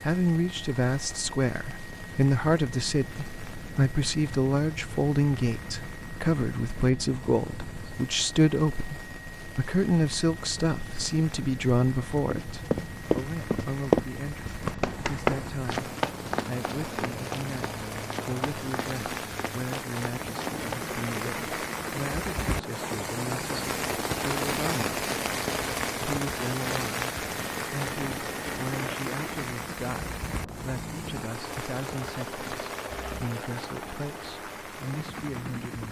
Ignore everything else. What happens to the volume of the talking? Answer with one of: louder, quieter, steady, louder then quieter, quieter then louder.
quieter.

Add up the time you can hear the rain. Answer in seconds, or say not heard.
36 s.